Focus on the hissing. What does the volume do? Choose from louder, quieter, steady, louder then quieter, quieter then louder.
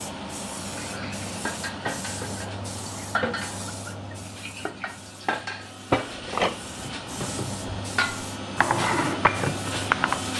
quieter then louder.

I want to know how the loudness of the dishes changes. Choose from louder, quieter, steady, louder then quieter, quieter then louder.
louder.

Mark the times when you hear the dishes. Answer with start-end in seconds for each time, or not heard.
0.7-10.2.